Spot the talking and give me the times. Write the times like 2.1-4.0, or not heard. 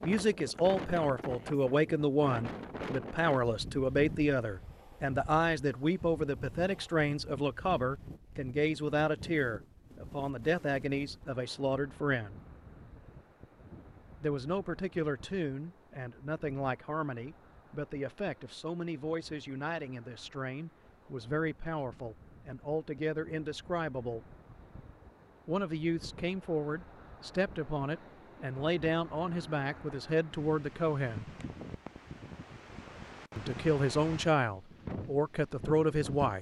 0.0-12.3, 14.2-24.2, 25.4-31.2, 33.4-36.3.